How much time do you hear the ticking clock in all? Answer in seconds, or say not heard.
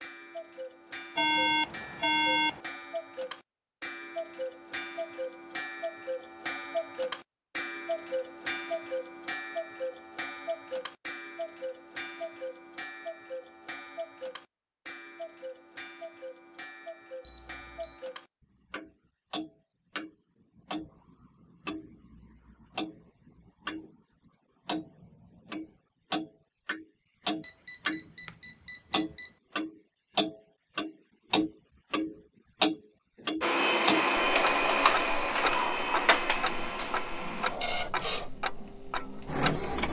40 s.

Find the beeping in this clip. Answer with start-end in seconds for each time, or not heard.
1.1-2.6, 17.2-18.0, 27.4-29.3.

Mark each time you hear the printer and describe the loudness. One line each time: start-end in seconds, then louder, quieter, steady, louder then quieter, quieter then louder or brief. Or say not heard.
33.4-39.8 quieter.